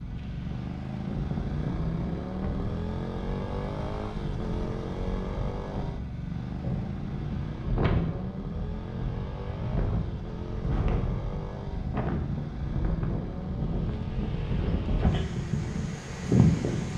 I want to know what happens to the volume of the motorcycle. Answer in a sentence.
The volume of the motorcycle goes down.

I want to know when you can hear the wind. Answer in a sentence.
The wind can be heard from 0.0 to 16.9 s.